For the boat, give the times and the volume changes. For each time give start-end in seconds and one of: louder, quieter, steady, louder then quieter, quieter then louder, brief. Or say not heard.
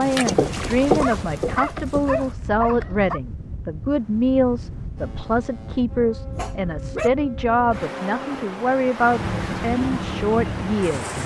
0.0-2.4 brief
5.0-11.2 louder.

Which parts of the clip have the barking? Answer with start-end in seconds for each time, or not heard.
0.8-3.2, 6.3-7.1.